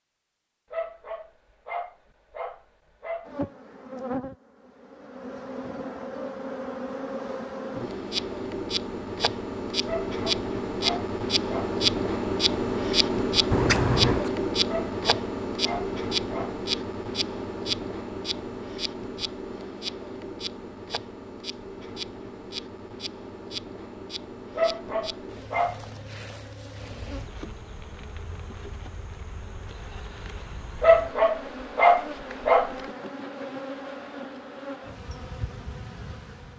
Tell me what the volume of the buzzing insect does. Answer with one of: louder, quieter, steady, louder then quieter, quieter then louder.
louder then quieter.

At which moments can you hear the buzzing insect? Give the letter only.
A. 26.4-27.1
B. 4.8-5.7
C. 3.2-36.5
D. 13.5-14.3
C.